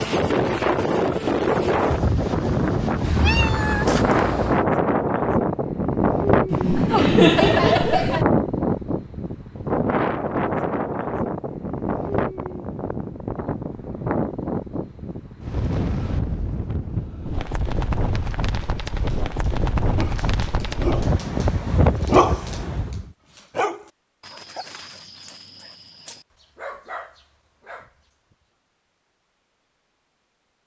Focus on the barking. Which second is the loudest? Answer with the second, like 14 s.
22 s.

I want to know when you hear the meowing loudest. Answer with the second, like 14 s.
3 s.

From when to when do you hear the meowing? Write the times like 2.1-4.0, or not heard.
3.0-4.7.